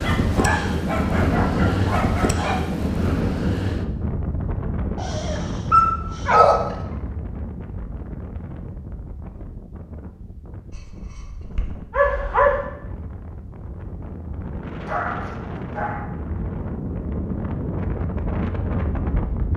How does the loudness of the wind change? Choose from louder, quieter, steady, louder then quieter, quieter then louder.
quieter then louder.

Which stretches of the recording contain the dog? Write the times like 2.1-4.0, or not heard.
0.0-2.6, 5.0-6.8, 10.7-12.7, 14.8-16.1.